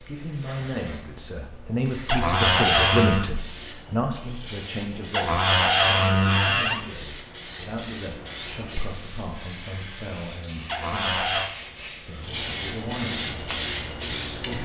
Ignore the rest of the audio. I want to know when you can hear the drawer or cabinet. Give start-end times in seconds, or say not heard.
2.0-3.3, 5.1-6.8, 10.7-11.5.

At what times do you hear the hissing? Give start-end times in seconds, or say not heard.
0.0-14.6.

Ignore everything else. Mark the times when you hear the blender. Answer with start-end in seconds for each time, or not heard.
not heard.